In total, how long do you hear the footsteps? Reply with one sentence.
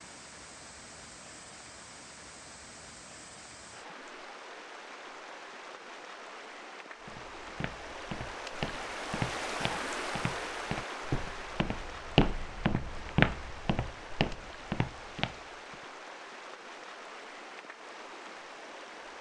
You can hear the footsteps for 9 seconds altogether.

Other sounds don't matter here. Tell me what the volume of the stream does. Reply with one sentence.
The loudness of the stream goes up, then down.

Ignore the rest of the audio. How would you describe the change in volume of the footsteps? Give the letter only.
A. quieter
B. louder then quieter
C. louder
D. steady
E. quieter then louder
B.